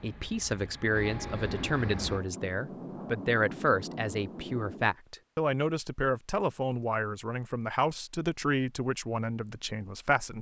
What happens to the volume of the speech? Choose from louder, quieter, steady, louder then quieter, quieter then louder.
steady.